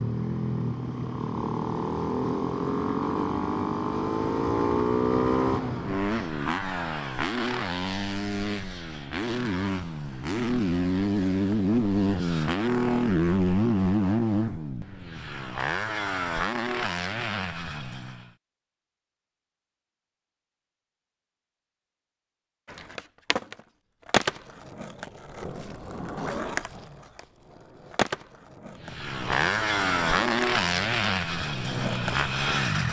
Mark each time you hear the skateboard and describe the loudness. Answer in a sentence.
The skateboard can be heard from 22.6 to 32.7 s, getting quieter.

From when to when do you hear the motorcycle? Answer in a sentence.
The motorcycle can be heard from 0.0 to 18.3 s and from 28.8 to 32.8 s.